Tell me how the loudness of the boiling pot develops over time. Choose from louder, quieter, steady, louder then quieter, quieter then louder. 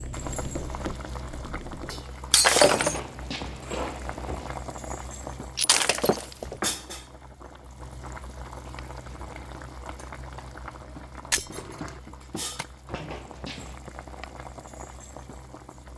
quieter.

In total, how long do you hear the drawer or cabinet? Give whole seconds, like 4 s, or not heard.
3 s.